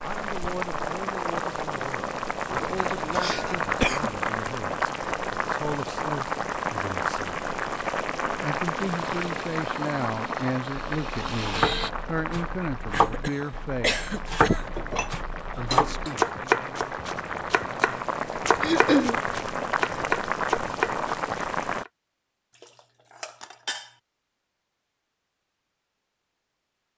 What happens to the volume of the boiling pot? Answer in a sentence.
The loudness of the boiling pot goes down, then up.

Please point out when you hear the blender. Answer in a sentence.
You can hear the blender from 8.8 to 11.9 s.